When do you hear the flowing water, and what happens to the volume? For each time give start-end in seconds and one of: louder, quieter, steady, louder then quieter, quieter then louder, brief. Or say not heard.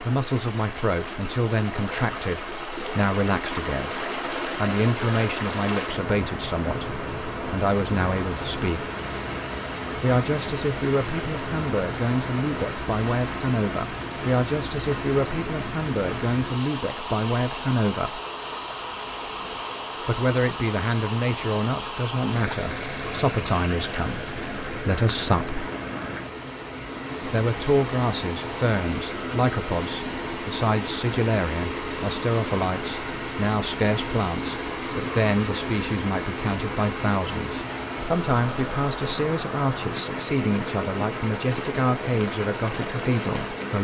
0.0-43.7 steady.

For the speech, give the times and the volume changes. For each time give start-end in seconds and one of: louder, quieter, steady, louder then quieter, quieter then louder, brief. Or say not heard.
0.0-8.8 steady
9.9-18.2 steady
20.1-25.6 steady
27.2-43.7 steady.